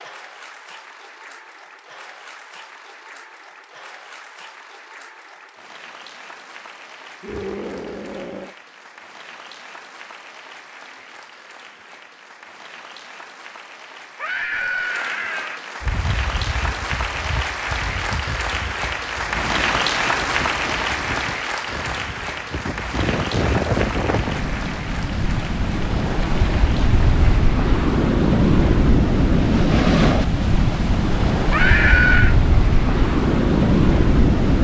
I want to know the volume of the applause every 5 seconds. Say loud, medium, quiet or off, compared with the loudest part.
quiet, quiet, quiet, loud, loud, medium, off.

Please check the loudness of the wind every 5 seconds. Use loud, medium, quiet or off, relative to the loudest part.
off, off, off, quiet, medium, loud, loud.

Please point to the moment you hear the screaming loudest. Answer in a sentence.
The loudest moment of the screaming is at 32 seconds.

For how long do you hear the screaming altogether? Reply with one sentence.
You can hear the screaming for 4 seconds altogether.